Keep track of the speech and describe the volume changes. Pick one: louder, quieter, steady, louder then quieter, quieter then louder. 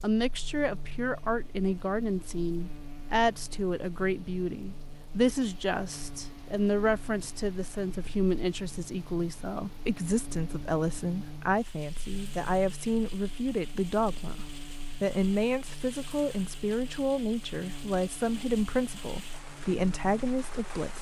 steady.